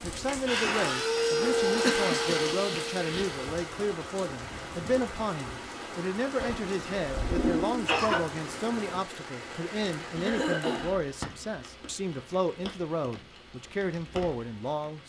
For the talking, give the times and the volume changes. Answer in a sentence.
You can hear the talking from 0.0 to 15.0 s, at a steady volume.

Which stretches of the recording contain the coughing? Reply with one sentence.
You can hear the coughing from 1.8 to 2.8 s, from 6.3 to 8.3 s and from 10.2 to 10.9 s.